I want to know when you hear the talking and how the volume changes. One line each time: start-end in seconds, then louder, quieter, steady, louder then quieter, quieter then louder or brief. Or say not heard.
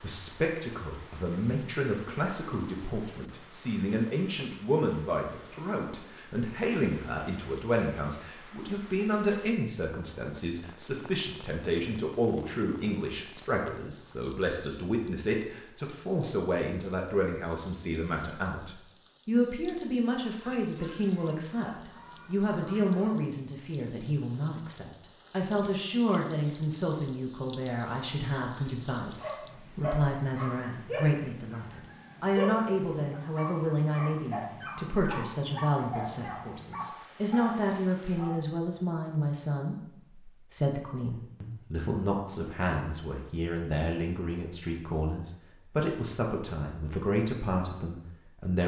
0.0-48.6 steady.